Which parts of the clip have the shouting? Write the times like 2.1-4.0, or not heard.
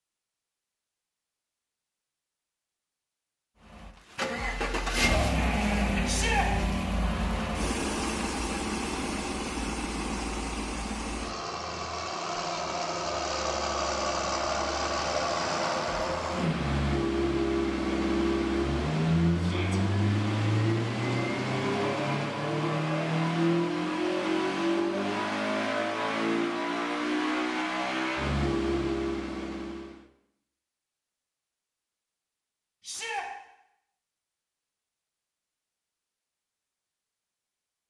6.0-6.5, 19.4-19.8, 32.8-33.2.